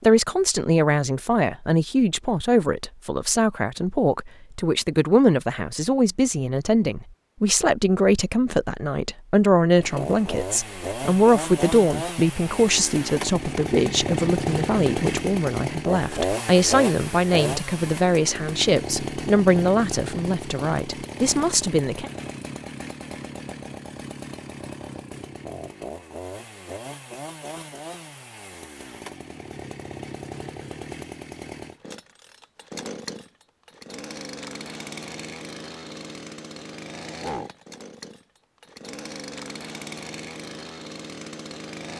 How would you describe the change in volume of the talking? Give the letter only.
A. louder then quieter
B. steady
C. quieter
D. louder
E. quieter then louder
B.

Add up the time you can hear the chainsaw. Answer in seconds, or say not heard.
32 s.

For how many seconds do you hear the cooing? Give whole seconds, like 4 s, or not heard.
not heard.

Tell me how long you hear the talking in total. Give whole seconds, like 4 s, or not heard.
22 s.